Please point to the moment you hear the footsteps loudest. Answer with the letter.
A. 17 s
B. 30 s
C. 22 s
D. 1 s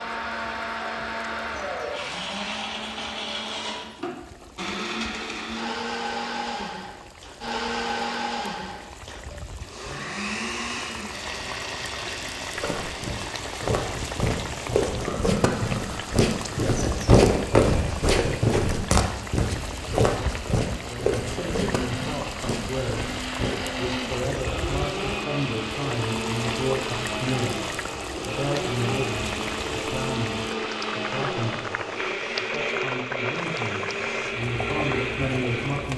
A.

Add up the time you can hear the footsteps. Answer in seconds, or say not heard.
11 s.